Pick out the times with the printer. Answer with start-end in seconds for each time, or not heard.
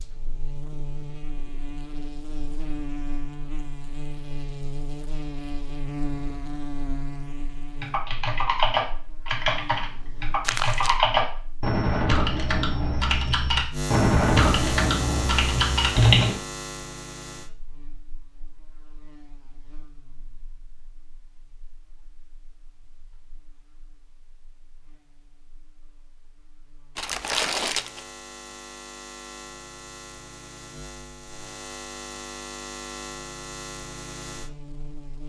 not heard.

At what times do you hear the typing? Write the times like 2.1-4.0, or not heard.
7.8-16.4.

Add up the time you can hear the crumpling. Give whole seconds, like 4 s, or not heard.
2 s.